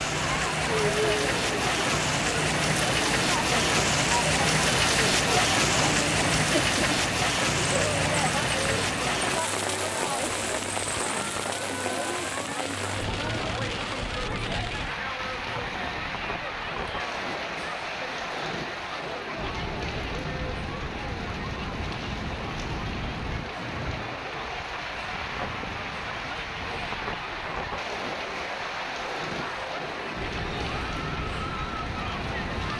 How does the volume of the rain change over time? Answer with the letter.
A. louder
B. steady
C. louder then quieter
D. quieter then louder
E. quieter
E.